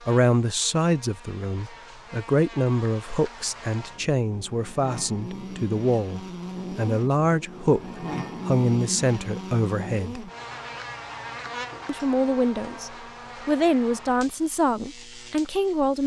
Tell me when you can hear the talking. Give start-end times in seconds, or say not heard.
0.1-10.3, 11.8-16.0.